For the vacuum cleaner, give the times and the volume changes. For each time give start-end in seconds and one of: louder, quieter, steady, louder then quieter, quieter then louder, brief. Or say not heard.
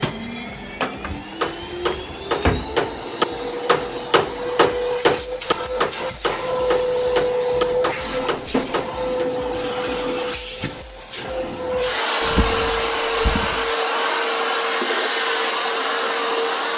0.0-16.7 louder.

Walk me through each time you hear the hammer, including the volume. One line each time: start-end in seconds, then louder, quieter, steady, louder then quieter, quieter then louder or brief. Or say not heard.
0.0-9.3 louder then quieter.